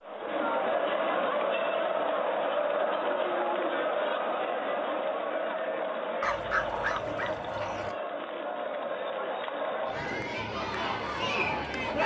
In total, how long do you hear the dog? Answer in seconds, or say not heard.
2 s.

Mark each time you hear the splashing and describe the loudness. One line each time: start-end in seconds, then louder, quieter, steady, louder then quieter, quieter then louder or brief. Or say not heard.
not heard.